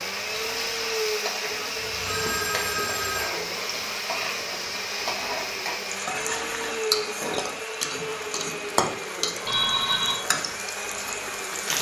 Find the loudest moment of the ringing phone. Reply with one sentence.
The volume of the ringing phone peaks at 10 seconds.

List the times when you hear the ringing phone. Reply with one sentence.
You can hear the ringing phone from 1.8 to 3.3 s and from 9.4 to 10.2 s.